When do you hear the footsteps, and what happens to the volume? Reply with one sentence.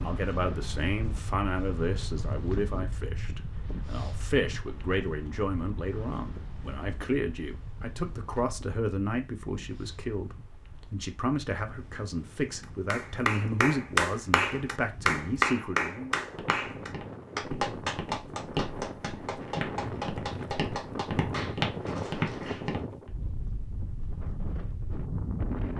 You can hear the footsteps from 16.1 to 23.1 s, getting louder.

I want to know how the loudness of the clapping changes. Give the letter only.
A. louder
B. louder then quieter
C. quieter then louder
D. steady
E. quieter
E.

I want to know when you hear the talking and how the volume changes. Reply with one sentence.
The talking can be heard from 0.0 to 16.2 s, at a steady volume.